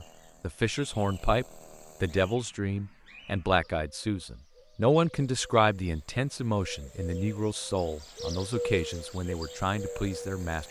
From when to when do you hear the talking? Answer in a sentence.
The talking can be heard from 0.0 to 10.6 s.